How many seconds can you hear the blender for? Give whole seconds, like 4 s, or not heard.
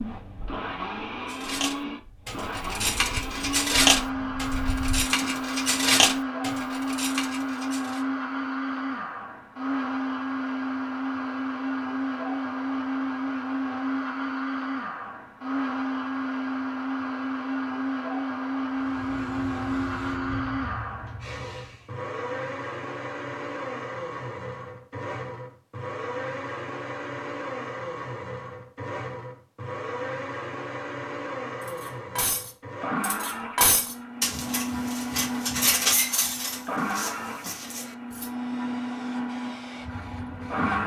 41 s.